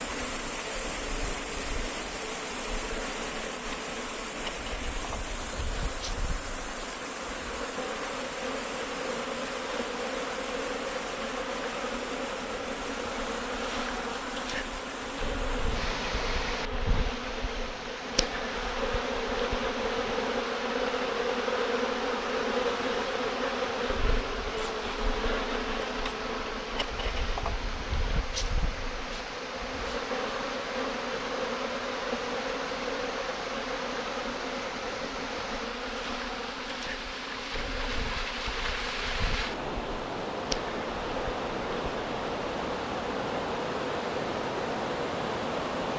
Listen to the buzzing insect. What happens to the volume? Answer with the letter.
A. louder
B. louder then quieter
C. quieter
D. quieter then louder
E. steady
B.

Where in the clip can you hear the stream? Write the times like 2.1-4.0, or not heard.
0.0-45.9.